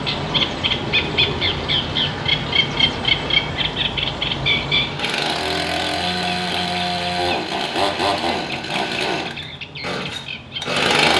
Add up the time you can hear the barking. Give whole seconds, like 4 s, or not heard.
not heard.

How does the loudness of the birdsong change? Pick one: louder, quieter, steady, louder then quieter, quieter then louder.
quieter.